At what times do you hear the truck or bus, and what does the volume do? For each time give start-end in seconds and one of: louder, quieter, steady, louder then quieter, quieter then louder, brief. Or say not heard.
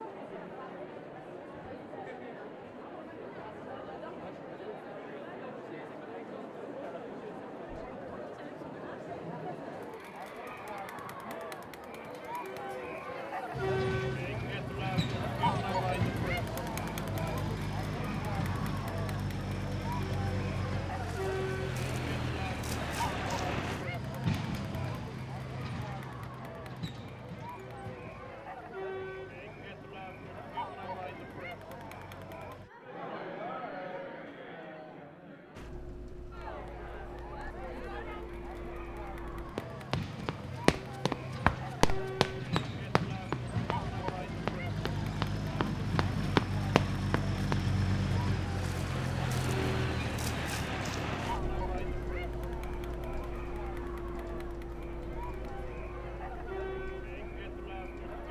13.5-32.7 quieter
35.5-58.2 louder then quieter.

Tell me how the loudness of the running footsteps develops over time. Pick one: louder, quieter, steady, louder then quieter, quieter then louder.
quieter then louder.